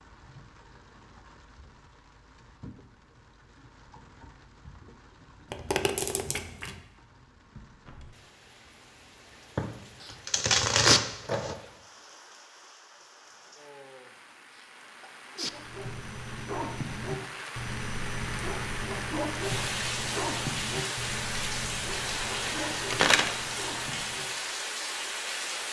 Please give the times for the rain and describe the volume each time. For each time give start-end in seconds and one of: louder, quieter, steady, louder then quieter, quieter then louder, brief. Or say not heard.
0.0-25.6 louder.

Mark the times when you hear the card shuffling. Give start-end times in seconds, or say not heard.
5.5-6.8, 9.6-11.6, 22.4-23.4.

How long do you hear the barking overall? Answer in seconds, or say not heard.
9 s.